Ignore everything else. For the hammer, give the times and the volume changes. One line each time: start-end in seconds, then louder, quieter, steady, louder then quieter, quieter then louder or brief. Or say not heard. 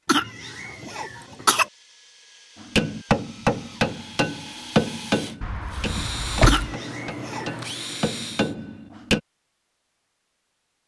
2.6-9.2 quieter then louder.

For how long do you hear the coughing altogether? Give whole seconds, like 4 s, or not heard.
3 s.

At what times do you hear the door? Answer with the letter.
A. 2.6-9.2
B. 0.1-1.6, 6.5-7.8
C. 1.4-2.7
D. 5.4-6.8
D.